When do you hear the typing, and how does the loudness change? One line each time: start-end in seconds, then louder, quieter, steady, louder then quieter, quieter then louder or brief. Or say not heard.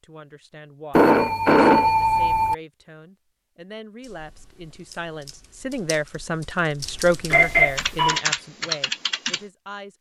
4.0-9.4 louder.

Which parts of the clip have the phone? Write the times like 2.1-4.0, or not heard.
0.9-2.5, 7.3-8.2.